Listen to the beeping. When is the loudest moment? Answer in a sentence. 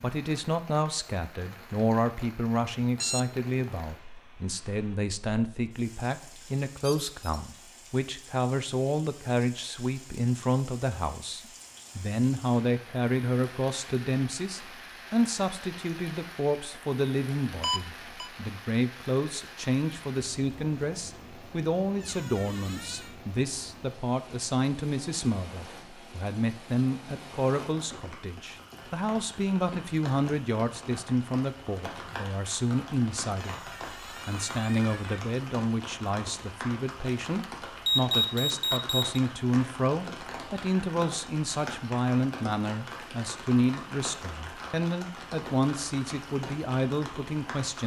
The volume of the beeping peaks at 38 seconds.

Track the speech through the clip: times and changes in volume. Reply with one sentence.
The speech can be heard from 0.0 to 33.6 s, at a steady volume; and from 34.2 to 47.8 s, at a steady volume.